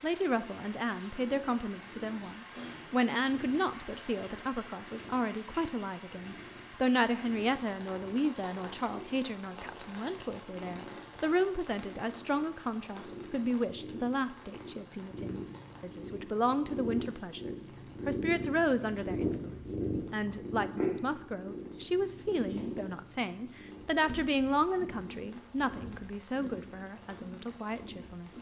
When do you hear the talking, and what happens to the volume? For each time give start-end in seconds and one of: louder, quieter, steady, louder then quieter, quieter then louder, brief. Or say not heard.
0.0-28.3 steady.